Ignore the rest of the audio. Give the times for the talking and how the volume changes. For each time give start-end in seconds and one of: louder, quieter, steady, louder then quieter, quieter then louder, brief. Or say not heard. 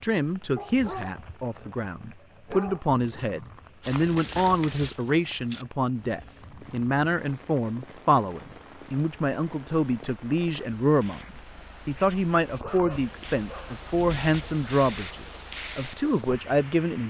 0.0-17.0 steady.